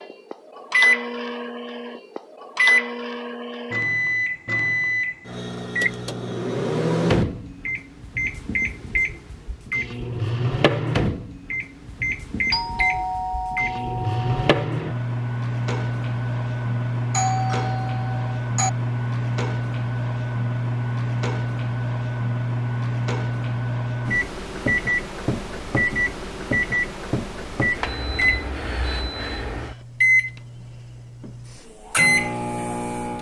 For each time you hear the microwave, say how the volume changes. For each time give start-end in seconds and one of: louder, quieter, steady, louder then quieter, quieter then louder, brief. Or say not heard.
0.0-33.1 steady.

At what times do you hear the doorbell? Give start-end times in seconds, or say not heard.
12.5-14.6, 17.1-18.7.